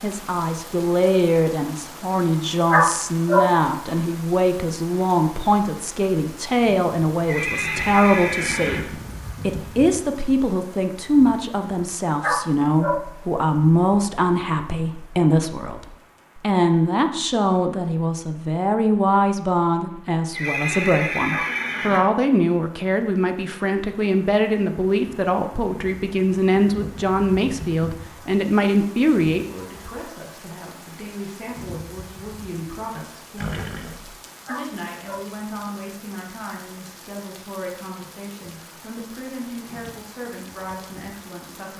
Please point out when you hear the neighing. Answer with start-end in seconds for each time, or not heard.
7.2-8.9, 20.3-22.1, 33.4-34.1.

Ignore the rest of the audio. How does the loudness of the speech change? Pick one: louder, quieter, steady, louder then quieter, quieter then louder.
quieter.